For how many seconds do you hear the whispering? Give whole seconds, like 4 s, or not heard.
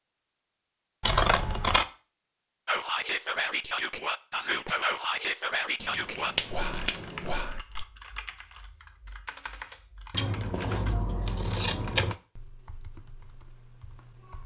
5 s.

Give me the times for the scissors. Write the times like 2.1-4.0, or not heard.
1.0-1.9, 5.8-7.4, 10.1-12.2.